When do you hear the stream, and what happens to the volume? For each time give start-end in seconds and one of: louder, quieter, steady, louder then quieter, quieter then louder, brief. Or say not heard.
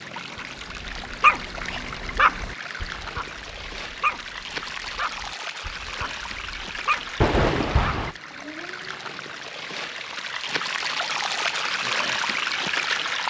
0.0-13.2 louder.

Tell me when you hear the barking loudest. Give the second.
1 s.